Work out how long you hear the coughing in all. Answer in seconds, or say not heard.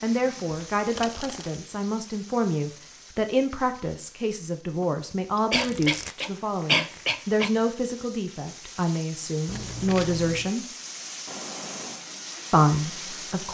3 s.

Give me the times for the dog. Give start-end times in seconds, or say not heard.
not heard.